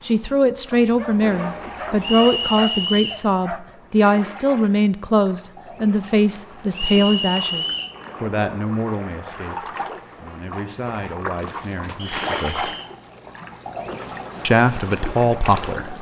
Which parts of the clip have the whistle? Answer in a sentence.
The whistle can be heard from 2.0 to 3.2 s, from 6.7 to 8.0 s and from 11.9 to 12.9 s.